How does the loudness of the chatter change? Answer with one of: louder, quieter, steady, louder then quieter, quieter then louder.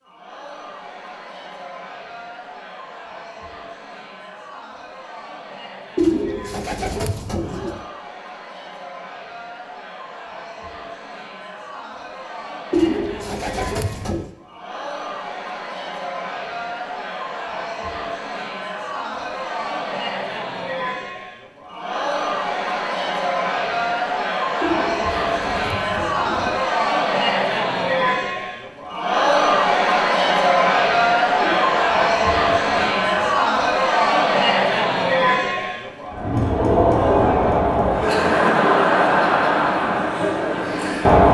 louder.